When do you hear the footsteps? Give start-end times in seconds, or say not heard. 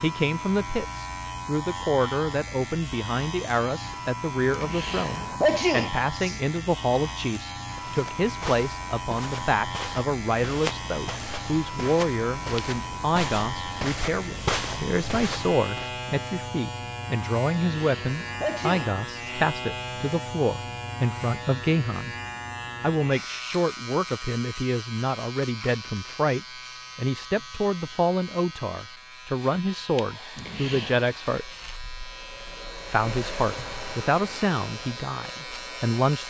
7.7-15.9.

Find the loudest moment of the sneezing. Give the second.
6 s.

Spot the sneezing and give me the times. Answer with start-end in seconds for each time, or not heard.
4.5-6.4, 17.8-19.3, 30.4-31.0.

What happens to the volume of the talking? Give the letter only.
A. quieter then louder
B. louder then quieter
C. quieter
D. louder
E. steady
E.